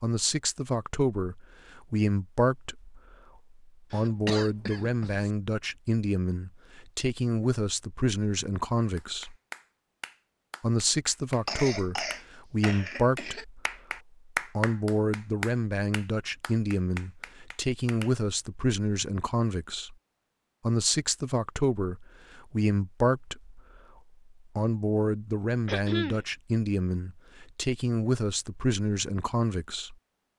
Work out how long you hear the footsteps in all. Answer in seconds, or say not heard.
not heard.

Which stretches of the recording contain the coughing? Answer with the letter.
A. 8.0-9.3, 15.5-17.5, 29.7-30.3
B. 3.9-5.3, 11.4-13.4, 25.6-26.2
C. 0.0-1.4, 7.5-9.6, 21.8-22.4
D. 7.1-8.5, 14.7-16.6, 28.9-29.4
B.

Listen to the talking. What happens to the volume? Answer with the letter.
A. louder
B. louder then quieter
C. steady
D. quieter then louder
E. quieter
C.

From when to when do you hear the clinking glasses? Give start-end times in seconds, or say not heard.
not heard.